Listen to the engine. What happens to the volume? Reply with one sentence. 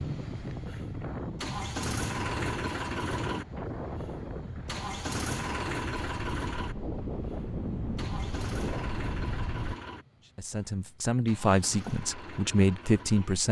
The volume of the engine goes down.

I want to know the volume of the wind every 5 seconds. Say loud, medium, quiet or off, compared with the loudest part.
loud, loud, off.